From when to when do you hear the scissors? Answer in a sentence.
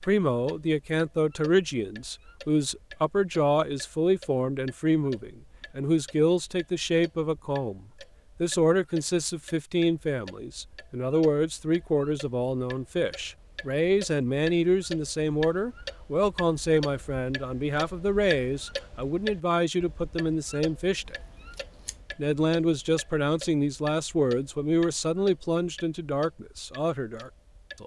You can hear the scissors from 21.1 to 22.1 s.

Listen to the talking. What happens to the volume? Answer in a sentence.
The loudness of the talking stays about the same.